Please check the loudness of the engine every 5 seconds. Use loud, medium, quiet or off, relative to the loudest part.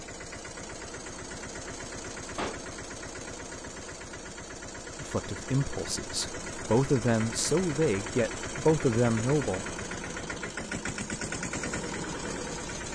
medium, loud, loud.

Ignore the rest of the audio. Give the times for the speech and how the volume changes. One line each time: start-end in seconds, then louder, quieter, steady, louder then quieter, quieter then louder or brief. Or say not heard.
5.0-9.7 louder.